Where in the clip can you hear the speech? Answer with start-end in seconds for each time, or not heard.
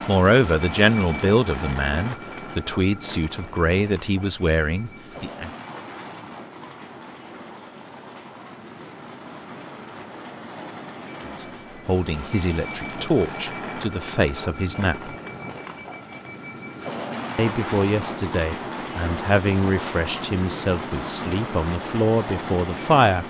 0.1-5.5, 11.4-15.1, 17.4-23.2.